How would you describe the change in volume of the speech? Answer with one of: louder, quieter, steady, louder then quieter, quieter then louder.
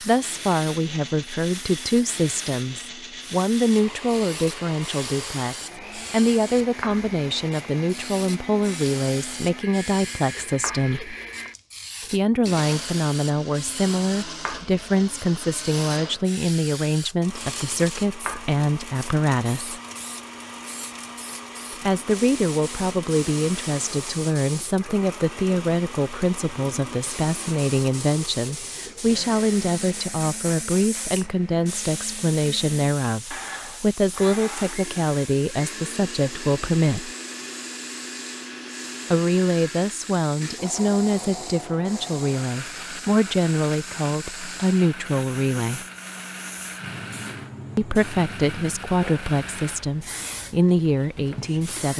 steady.